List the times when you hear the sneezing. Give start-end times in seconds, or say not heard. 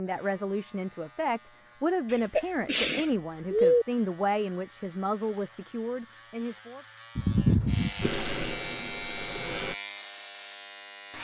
2.1-3.9, 7.2-8.2.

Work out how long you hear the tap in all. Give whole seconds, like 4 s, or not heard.
2 s.